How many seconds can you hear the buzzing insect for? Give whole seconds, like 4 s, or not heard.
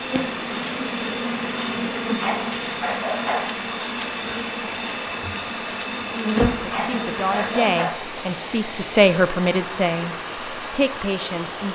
8 s.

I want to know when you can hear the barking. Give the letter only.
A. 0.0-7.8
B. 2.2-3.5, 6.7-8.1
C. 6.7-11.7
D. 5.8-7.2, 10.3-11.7
B.